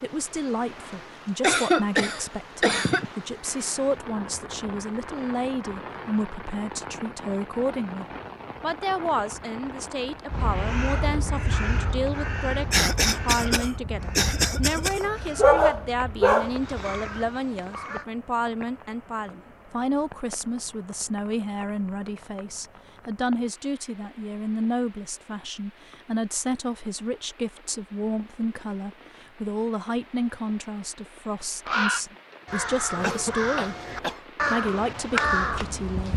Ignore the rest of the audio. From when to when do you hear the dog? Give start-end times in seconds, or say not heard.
15.0-16.5.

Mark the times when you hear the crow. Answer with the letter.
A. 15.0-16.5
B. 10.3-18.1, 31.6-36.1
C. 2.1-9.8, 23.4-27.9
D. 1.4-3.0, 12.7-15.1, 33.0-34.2
B.